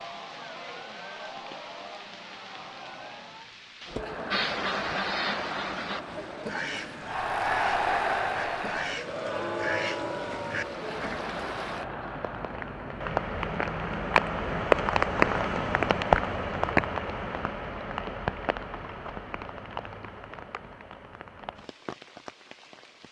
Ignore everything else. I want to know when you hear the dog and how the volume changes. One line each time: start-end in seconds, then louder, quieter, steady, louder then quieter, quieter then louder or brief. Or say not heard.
not heard.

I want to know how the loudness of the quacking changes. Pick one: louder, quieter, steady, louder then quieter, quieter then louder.
quieter then louder.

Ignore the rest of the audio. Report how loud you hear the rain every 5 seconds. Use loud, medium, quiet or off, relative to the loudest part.
quiet, quiet, loud, loud, quiet.